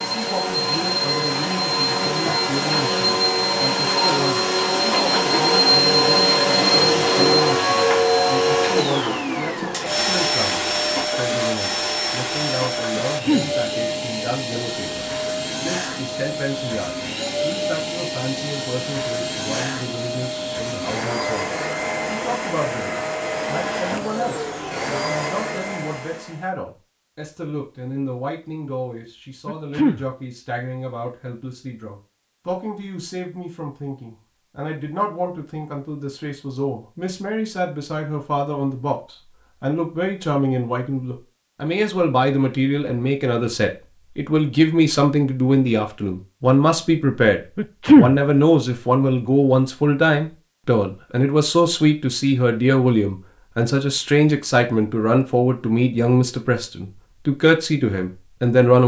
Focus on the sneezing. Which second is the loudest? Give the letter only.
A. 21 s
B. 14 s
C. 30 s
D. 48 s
D.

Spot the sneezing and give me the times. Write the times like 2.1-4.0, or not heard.
12.9-13.5, 29.4-30.1, 47.5-48.1.